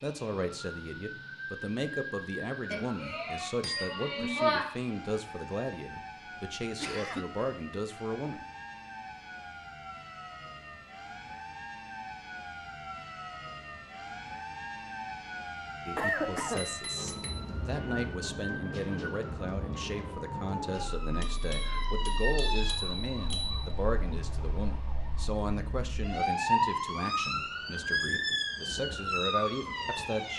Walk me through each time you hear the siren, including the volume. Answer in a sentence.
You can hear the siren from 0.0 to 30.3 s, getting louder.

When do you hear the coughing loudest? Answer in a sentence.
The volume of the coughing peaks at 16 seconds.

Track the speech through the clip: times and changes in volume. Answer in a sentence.
The speech can be heard from 0.0 to 8.4 s, at a steady volume; and from 15.8 to 30.3 s, at a steady volume.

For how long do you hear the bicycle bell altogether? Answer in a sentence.
You can hear the bicycle bell for 5 seconds altogether.